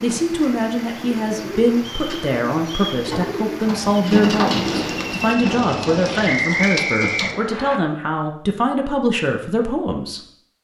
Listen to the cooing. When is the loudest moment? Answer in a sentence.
The volume of the cooing peaks at 4 seconds.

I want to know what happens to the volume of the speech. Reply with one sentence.
The loudness of the speech stays about the same.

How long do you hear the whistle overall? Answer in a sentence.
You can hear the whistle for 3 seconds altogether.